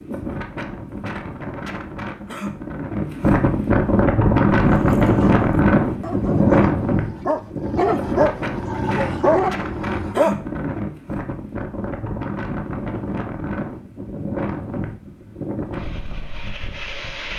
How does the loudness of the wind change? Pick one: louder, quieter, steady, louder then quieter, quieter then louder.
louder then quieter.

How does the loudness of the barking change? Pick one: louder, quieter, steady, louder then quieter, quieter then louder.
louder.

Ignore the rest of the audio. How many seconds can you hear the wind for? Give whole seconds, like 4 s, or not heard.
17 s.